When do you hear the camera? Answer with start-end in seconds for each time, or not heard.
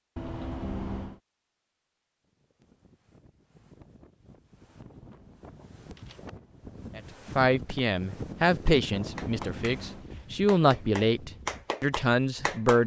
0.1-1.2, 4.7-6.7, 8.9-10.1.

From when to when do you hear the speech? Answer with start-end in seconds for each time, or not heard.
7.0-12.8.